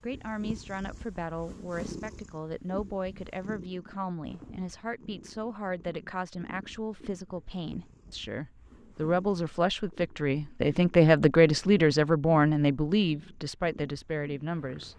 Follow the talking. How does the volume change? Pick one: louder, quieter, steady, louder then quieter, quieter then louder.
louder.